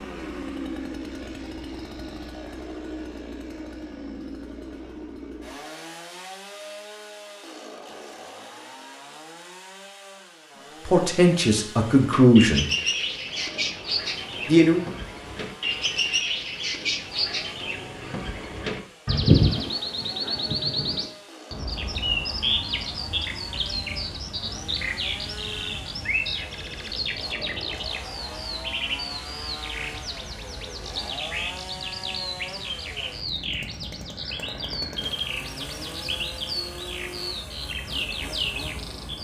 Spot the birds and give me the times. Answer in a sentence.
You can hear the birds from 11.9 to 39.1 s.